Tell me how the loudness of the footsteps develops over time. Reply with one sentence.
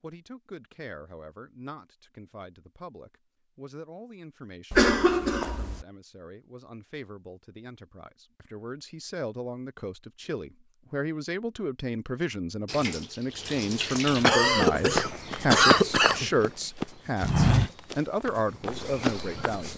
The loudness of the footsteps goes up, then down.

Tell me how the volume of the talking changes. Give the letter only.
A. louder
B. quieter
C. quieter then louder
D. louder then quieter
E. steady
A.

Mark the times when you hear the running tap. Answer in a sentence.
You can hear the running tap from 12.7 to 14.2 s.